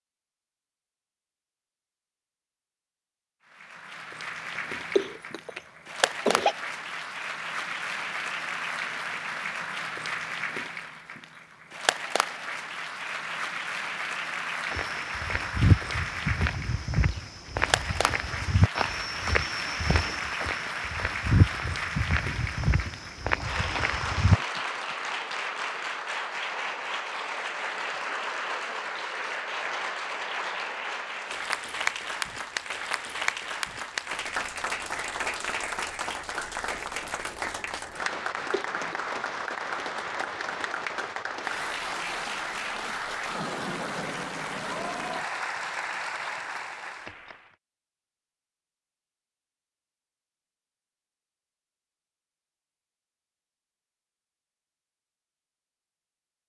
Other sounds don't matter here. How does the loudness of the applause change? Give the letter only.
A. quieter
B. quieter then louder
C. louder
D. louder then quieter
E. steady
E.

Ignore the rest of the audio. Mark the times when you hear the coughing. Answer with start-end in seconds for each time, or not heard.
4.5-6.5, 38.5-39.1.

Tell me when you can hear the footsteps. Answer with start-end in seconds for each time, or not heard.
14.7-24.4.